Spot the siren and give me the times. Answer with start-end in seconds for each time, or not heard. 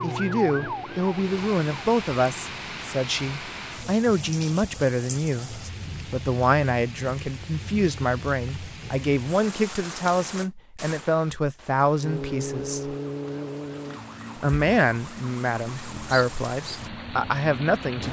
0.0-1.9, 12.0-17.8.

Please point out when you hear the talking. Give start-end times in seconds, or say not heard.
0.0-12.9, 14.3-18.0.